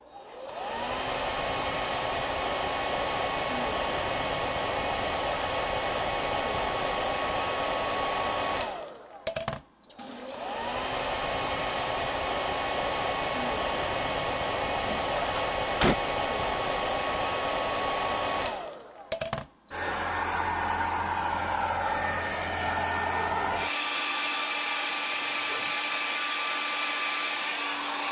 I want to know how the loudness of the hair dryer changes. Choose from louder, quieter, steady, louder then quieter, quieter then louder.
steady.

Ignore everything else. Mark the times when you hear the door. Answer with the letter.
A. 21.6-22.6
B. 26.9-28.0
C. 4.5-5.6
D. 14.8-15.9
D.